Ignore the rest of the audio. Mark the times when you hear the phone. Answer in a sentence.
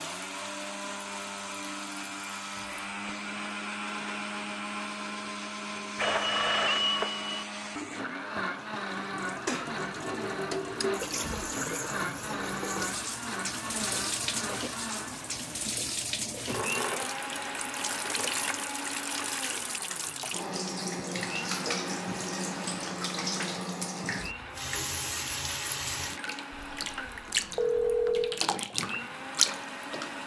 The phone can be heard from 6.0 to 7.5 s and from 26.5 to 28.4 s.